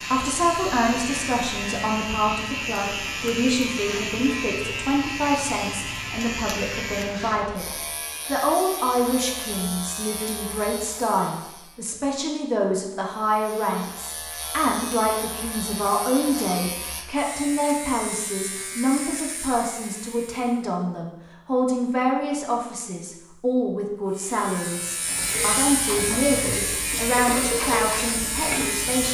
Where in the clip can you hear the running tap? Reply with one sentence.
The running tap can be heard from 25.0 to 29.0 s.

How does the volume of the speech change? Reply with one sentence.
The loudness of the speech stays about the same.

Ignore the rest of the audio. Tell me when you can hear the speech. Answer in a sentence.
You can hear the speech from 0.0 to 29.0 s.